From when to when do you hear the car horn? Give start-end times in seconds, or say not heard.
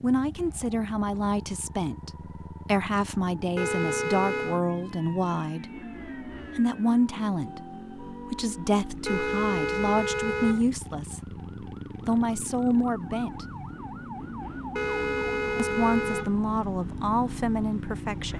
3.5-4.6, 9.1-10.7, 14.8-16.4.